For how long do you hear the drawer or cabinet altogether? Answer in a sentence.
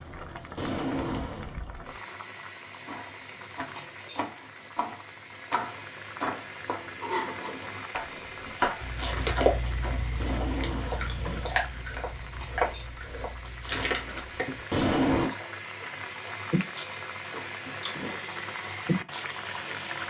The drawer or cabinet can be heard for 3 seconds in total.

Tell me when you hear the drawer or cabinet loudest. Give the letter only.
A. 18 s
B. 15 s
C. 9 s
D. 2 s
B.